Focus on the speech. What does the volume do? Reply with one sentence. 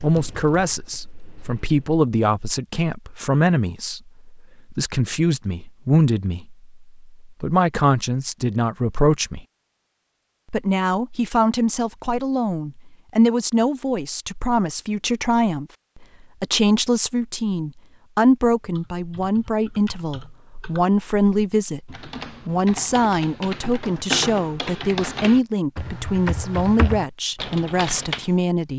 The volume of the speech stays about the same.